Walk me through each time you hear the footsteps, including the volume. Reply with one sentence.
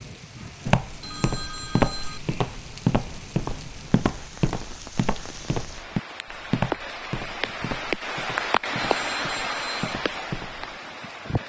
The footsteps can be heard from 0.7 to 10.7 s, getting quieter.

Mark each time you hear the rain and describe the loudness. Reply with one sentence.
The rain can be heard from 0.0 to 11.4 s, getting louder.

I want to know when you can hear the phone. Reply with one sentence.
You can hear the phone from 1.0 to 2.2 s and from 8.8 to 9.9 s.